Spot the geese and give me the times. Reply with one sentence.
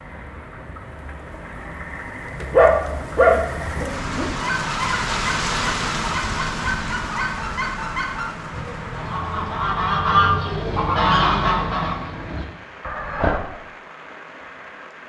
The geese can be heard from 4.3 to 13.4 s.